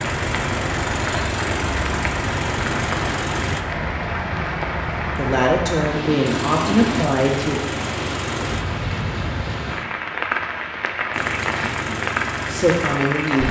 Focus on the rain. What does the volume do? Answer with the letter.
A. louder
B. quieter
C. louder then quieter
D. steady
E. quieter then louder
D.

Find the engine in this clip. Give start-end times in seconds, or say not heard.
0.0-3.6, 6.2-8.8, 11.1-13.3.